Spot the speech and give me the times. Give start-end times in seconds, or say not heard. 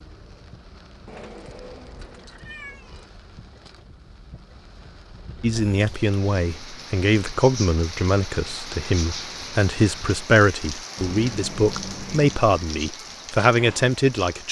5.4-14.4.